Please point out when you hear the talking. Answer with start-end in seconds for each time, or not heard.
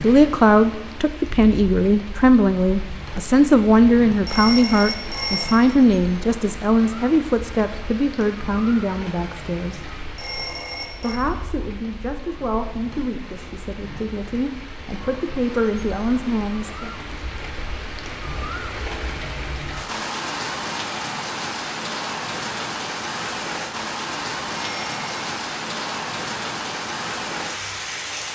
0.0-9.9, 11.0-16.9.